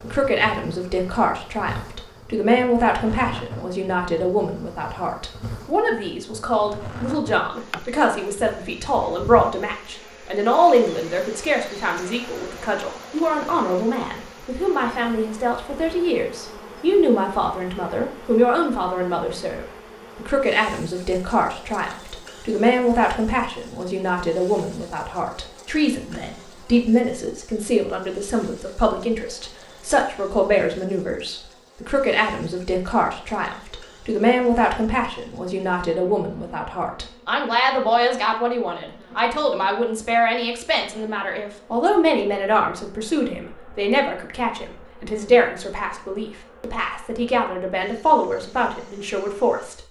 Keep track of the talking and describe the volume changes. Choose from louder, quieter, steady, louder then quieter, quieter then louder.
steady.